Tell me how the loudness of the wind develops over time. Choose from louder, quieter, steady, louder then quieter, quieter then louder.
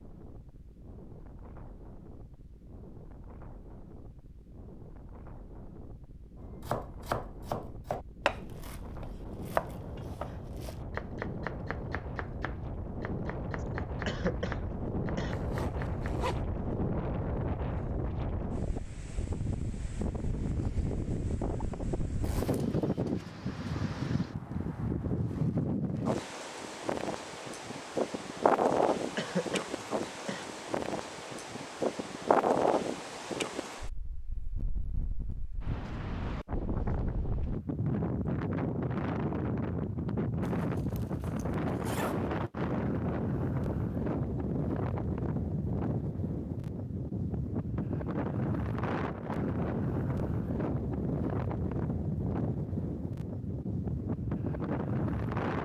louder.